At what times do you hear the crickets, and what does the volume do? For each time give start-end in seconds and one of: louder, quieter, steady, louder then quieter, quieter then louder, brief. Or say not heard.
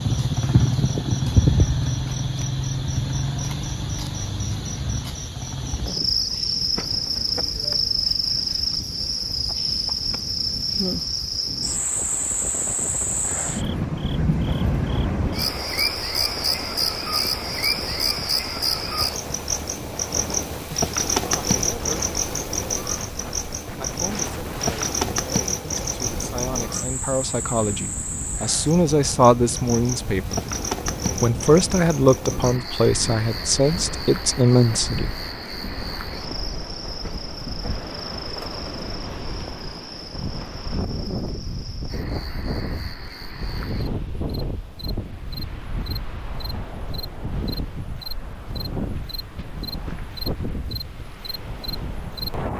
0.0-52.3 quieter.